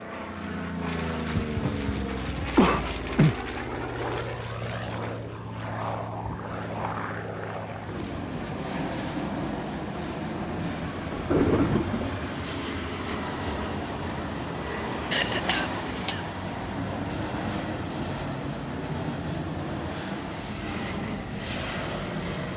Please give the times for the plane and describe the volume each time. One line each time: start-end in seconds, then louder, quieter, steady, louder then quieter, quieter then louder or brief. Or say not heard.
0.0-22.5 steady.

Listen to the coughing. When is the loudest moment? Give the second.
3 s.